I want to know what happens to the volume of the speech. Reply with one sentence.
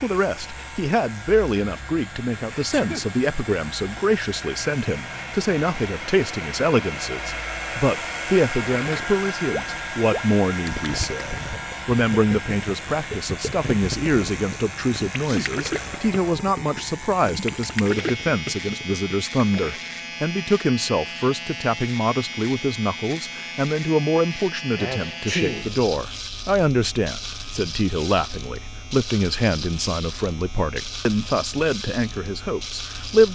The volume of the speech stays about the same.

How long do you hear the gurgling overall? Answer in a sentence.
The gurgling can be heard for 11 seconds in total.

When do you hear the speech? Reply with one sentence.
The speech can be heard from 0.0 to 33.3 s.